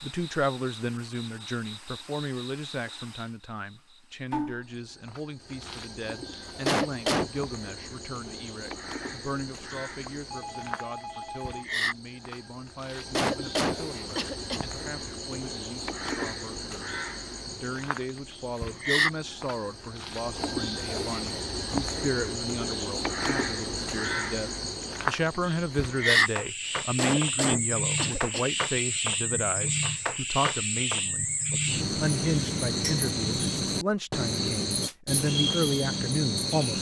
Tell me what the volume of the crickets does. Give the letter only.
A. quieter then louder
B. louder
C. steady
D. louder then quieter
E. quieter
B.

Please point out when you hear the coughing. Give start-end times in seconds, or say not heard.
6.3-7.3, 12.8-14.7, 26.6-28.4.